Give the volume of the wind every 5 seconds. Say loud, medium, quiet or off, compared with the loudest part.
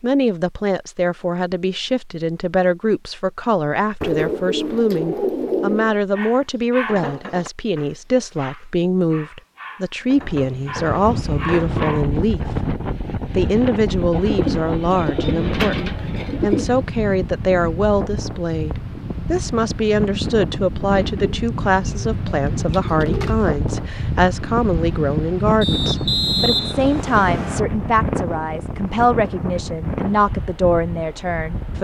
off, off, loud, loud, loud, loud, medium.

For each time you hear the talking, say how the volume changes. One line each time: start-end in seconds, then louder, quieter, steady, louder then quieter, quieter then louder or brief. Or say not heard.
0.0-31.8 steady.